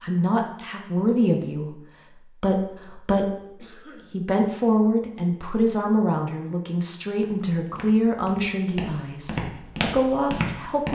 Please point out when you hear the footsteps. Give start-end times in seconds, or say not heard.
7.2-10.8.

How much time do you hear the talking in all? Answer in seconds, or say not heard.
11 s.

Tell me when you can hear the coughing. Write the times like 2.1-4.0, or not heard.
3.5-4.2.